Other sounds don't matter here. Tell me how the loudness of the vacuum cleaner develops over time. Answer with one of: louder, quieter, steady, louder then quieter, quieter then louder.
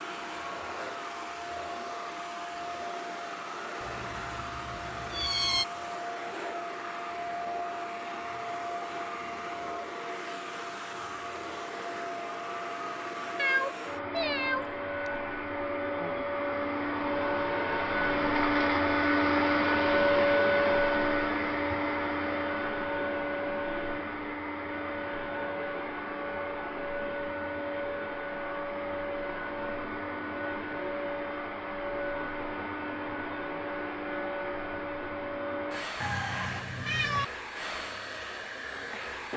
louder then quieter.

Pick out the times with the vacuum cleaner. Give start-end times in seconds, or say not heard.
0.0-39.3.